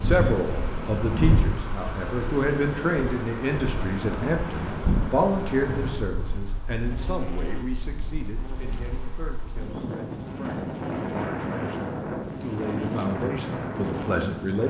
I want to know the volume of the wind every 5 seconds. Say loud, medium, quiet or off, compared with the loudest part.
loud, medium, loud.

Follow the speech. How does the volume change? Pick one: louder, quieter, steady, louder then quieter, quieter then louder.
quieter then louder.